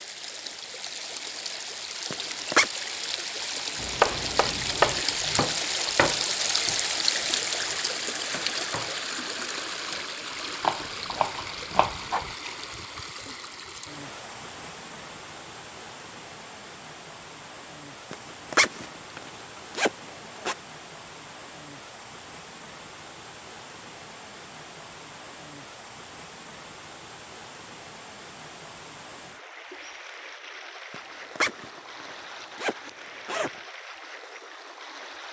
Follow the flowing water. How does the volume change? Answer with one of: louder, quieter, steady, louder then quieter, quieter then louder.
quieter.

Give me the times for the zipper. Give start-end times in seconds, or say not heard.
2.1-2.7, 18.1-20.6, 30.9-33.5.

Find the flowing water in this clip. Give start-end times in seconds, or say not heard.
0.0-35.2.